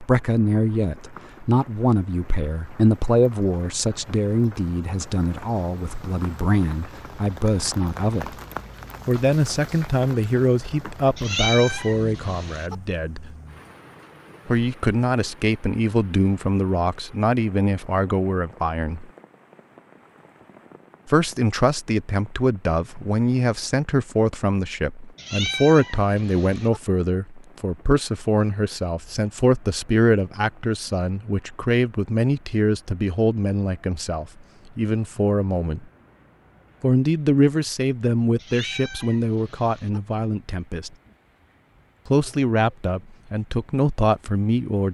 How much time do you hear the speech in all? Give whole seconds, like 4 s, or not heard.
39 s.